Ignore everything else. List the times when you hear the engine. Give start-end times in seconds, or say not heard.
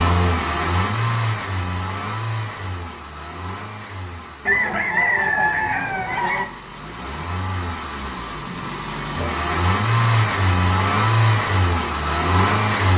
0.0-12.9.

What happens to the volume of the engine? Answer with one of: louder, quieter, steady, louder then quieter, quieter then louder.
quieter then louder.